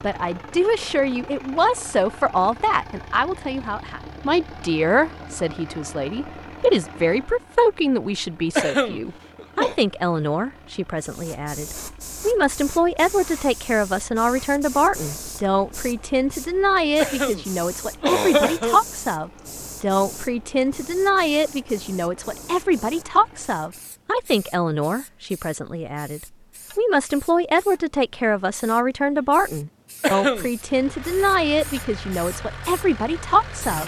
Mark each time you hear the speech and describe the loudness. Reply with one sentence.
You can hear the speech from 0.0 to 33.8 s, at a steady volume.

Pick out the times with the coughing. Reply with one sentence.
You can hear the coughing from 8.6 to 9.8 s, from 16.9 to 18.8 s and from 30.0 to 30.9 s.